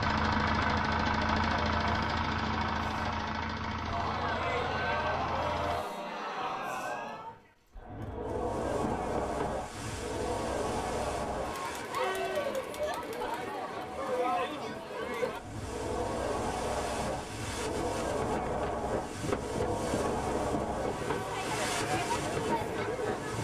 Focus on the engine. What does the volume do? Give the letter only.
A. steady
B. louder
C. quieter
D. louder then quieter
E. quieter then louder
C.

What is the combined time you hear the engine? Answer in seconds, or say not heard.
6 s.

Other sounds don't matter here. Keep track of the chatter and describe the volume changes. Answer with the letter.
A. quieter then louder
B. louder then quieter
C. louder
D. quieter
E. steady
E.